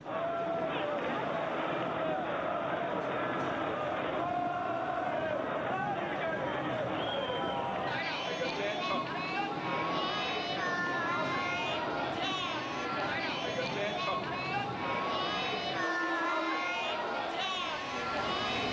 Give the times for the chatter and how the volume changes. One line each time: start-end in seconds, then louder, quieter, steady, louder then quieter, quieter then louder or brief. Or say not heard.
0.0-18.6 steady.